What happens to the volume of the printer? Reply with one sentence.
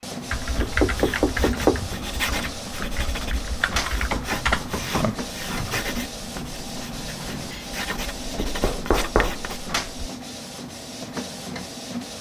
The volume of the printer stays about the same.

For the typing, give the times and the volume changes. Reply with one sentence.
You can hear the typing from 0.3 to 5.8 s, getting quieter then louder.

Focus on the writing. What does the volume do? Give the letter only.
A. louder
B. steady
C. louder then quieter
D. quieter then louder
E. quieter
D.